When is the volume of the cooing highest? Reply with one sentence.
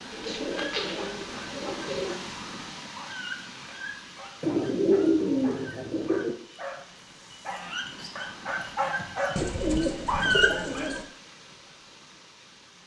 The loudest moment of the cooing is at 5 seconds.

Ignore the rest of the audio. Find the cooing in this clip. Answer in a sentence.
The cooing can be heard from 0.1 to 2.1 s, from 4.4 to 6.3 s and from 9.3 to 11.1 s.